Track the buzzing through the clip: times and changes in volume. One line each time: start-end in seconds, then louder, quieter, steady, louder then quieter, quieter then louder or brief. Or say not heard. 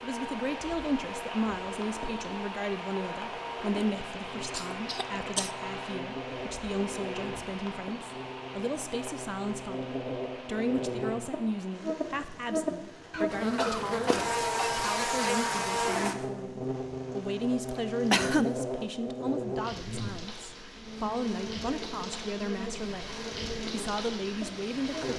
0.0-25.1 louder then quieter.